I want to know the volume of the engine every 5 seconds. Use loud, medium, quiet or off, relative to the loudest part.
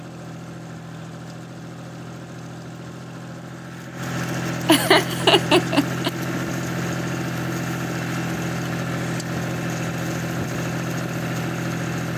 medium, loud, loud.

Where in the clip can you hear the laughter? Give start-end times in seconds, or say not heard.
4.7-6.1.